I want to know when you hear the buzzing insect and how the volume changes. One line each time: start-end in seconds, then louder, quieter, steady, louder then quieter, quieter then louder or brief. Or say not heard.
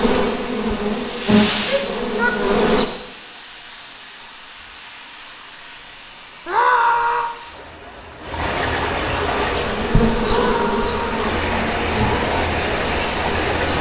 0.0-2.9 brief
9.3-13.7 quieter.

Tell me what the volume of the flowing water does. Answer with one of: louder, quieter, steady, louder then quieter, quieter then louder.
quieter then louder.